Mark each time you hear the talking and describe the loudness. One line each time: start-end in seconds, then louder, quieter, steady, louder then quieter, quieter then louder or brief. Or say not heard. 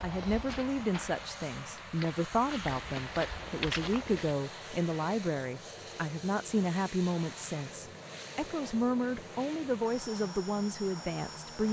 0.0-11.6 steady.